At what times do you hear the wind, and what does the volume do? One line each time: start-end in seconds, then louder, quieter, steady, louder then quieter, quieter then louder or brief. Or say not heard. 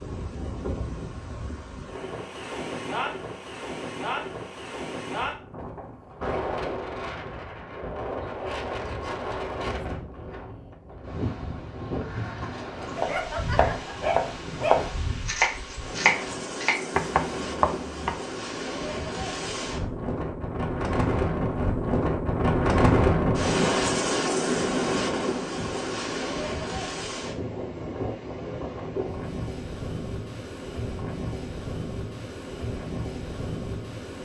0.0-34.2 louder then quieter.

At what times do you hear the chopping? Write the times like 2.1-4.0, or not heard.
12.8-18.1.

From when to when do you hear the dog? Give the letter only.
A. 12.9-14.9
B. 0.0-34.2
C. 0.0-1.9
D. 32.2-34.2
A.